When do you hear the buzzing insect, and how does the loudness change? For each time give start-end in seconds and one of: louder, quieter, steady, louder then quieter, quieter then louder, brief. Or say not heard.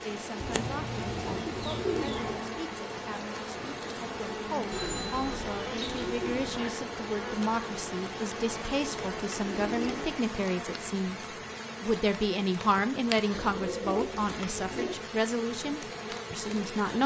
0.0-17.0 steady.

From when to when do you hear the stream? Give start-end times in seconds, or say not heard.
0.0-10.2.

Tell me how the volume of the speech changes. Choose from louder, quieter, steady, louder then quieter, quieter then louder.
louder.